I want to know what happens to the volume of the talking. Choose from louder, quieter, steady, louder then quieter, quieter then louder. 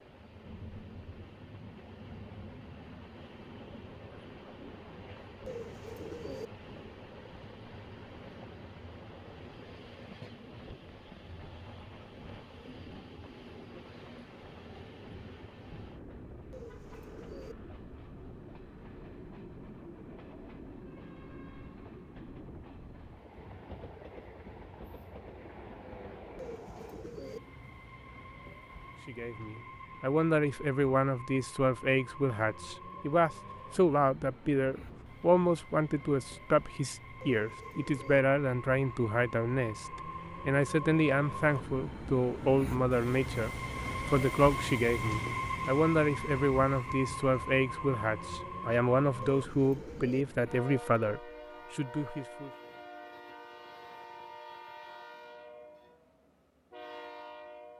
steady.